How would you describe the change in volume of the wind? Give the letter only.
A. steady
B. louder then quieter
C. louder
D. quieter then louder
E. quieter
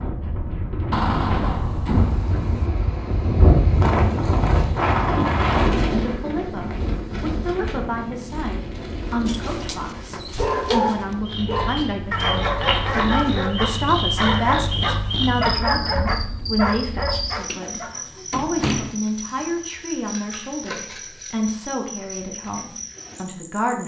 B.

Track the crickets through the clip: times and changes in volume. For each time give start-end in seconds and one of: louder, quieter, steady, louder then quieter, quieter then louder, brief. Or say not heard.
11.2-23.8 quieter.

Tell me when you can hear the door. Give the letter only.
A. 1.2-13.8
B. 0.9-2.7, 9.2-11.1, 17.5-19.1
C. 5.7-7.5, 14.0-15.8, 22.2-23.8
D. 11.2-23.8
B.